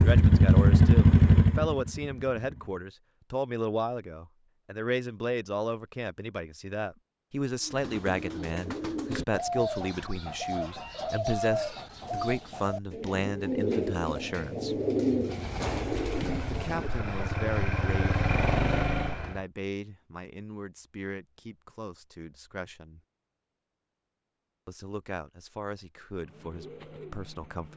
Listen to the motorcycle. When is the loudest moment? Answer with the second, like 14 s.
1 s.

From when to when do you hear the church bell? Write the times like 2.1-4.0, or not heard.
not heard.